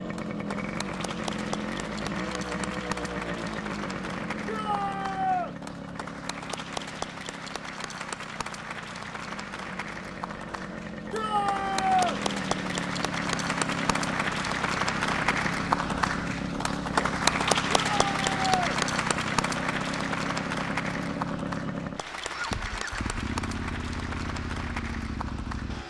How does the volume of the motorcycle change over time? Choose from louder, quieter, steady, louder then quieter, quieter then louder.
quieter then louder.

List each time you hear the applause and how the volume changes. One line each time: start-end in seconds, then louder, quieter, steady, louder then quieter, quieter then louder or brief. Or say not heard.
0.0-25.8 louder then quieter.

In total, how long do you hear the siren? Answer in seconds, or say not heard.
not heard.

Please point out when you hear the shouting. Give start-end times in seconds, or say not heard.
4.5-5.5, 11.1-12.2, 17.8-18.7.